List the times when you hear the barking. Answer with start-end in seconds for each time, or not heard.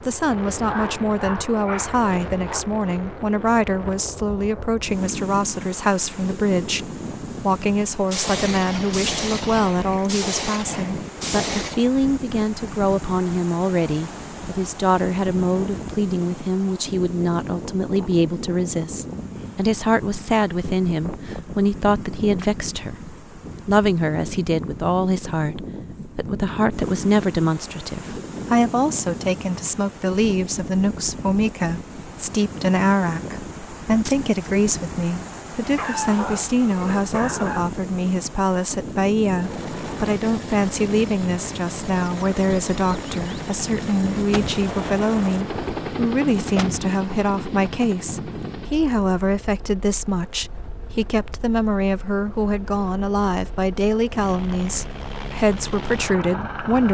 0.7-2.6, 35.6-37.6.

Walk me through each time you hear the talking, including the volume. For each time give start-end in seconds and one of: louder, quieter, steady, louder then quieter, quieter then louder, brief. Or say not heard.
0.0-56.8 steady.